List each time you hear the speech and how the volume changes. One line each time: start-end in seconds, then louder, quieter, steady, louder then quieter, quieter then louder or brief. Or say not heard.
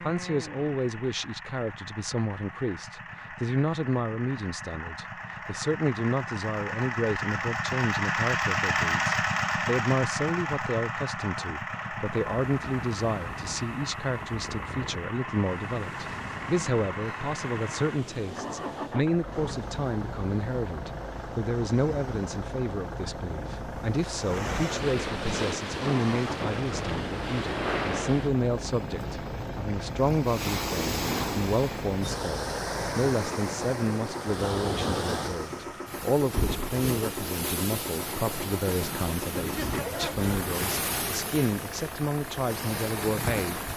0.0-43.6 steady.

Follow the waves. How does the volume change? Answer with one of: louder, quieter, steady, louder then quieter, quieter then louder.
louder.